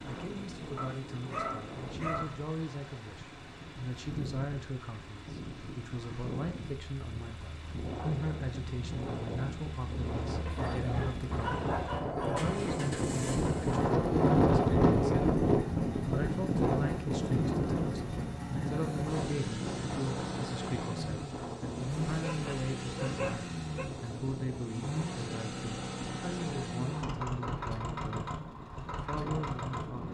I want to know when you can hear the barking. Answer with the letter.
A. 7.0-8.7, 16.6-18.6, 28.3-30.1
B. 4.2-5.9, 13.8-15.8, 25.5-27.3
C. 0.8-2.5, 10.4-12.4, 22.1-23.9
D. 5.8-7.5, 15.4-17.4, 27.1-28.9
C.